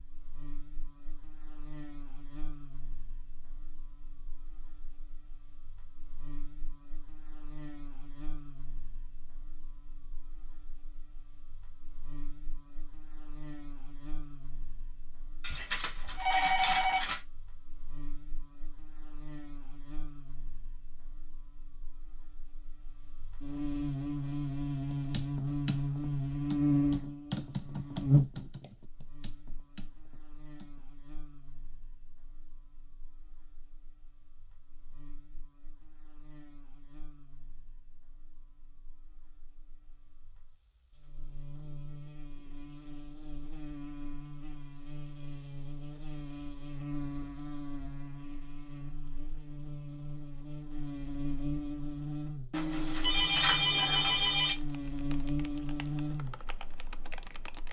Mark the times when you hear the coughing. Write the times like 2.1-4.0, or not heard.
not heard.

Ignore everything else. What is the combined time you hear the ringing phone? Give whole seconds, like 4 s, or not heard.
4 s.